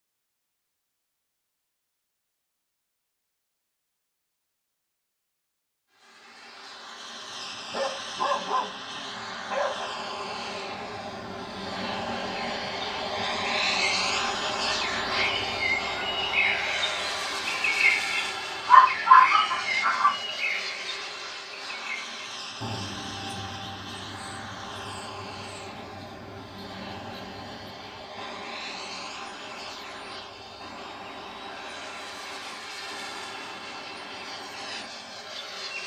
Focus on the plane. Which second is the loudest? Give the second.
14 s.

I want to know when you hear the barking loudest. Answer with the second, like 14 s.
19 s.